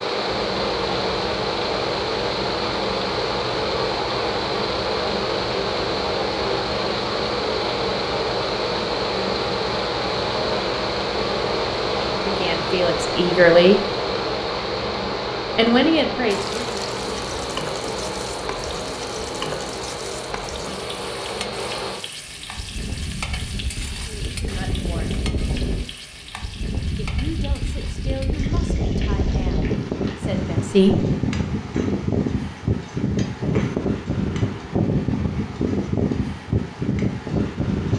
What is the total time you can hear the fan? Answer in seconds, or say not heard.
38 s.